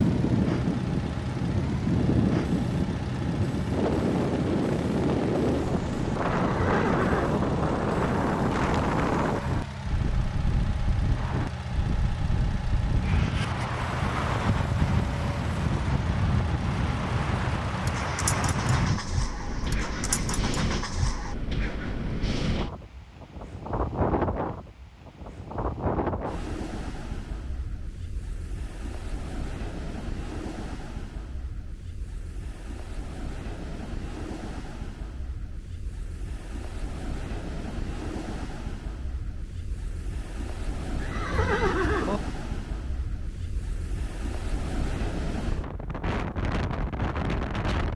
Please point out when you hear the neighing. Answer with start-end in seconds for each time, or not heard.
6.4-7.4, 41.0-42.2.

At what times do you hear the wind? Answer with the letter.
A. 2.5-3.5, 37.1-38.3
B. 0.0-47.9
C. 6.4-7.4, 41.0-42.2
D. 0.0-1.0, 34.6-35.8
B.